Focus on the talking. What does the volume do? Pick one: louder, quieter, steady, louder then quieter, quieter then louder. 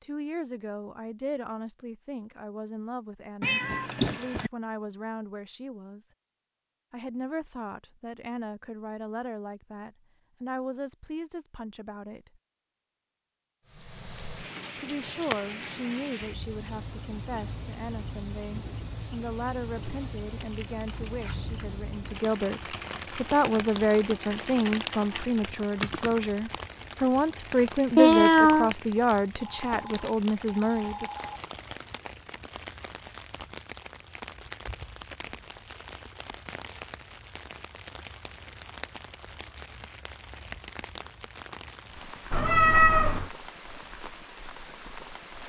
louder.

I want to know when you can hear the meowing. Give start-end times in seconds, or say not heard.
3.4-4.5, 27.9-28.7, 42.3-43.3.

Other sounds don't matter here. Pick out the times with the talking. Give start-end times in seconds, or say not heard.
0.0-6.0, 6.9-12.4, 14.8-31.1.